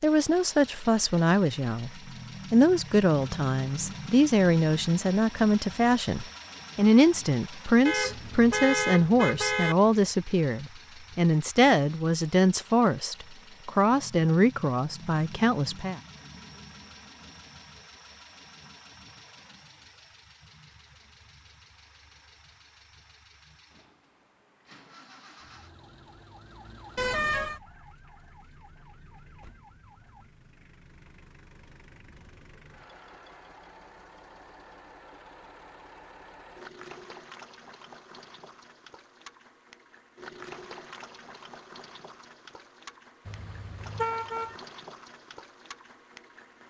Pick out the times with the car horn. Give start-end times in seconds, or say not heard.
7.8-9.8, 26.9-27.6, 43.2-44.5.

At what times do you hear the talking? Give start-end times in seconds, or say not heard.
0.0-1.9, 2.5-16.0.